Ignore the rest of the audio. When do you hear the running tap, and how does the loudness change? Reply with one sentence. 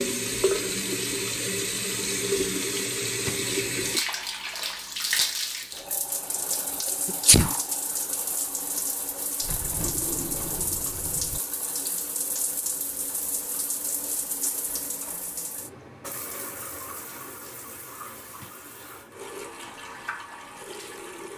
The running tap can be heard from 0.0 to 21.3 s, getting quieter.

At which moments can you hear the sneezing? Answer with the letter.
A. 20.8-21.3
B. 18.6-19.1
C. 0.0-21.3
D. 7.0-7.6
D.